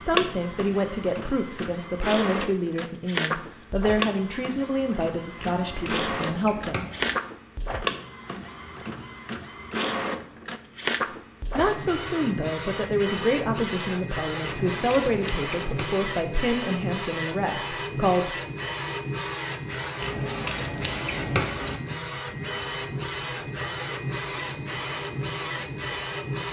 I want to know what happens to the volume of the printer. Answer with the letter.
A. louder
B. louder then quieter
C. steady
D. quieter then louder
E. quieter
C.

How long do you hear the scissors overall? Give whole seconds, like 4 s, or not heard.
5 s.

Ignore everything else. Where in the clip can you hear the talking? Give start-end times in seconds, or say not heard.
0.0-6.9, 11.6-18.4.